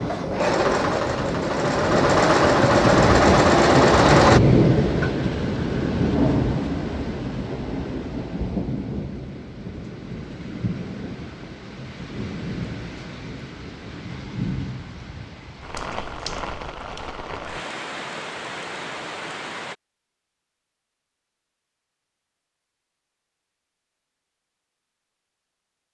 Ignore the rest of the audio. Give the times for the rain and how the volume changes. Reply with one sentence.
You can hear the rain from 0.0 to 19.8 s, getting quieter.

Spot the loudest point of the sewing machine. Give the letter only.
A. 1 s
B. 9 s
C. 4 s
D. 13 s
C.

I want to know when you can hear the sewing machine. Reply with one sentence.
The sewing machine can be heard from 0.0 to 4.4 s.